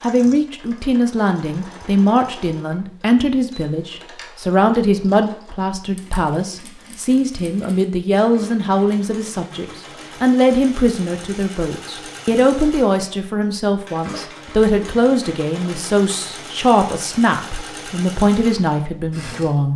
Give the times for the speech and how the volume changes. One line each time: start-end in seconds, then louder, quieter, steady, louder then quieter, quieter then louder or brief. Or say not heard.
0.0-19.7 steady.